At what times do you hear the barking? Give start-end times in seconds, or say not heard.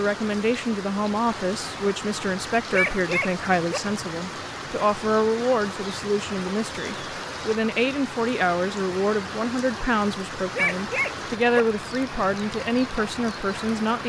2.7-3.8, 10.6-11.7.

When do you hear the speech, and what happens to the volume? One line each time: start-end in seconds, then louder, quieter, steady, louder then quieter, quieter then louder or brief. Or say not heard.
0.0-14.0 steady.